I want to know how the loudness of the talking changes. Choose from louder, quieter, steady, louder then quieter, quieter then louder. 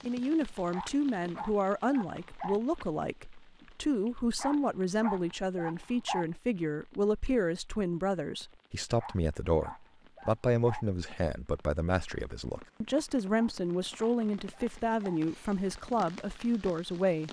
steady.